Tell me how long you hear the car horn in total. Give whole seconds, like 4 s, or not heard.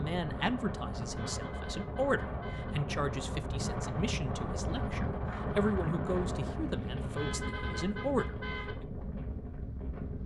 3 s.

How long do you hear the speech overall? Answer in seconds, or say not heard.
8 s.